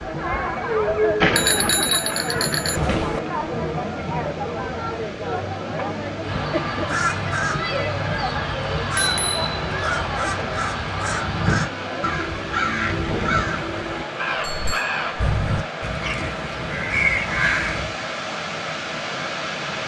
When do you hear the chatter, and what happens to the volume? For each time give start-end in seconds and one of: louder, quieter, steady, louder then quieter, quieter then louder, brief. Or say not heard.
0.0-19.6 quieter.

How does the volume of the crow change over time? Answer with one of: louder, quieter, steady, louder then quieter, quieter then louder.
steady.